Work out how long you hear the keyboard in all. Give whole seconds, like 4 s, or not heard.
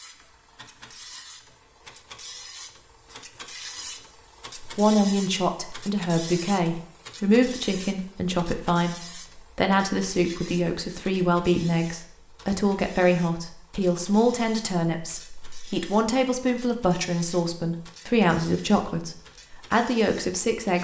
not heard.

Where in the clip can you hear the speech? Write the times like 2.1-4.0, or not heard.
4.6-8.9, 9.6-20.8.